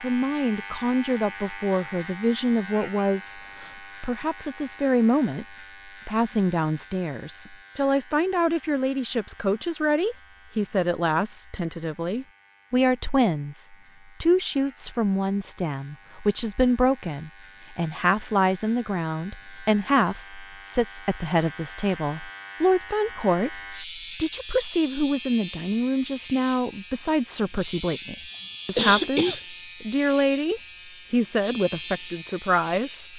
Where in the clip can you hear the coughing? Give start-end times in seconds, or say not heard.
28.3-29.4.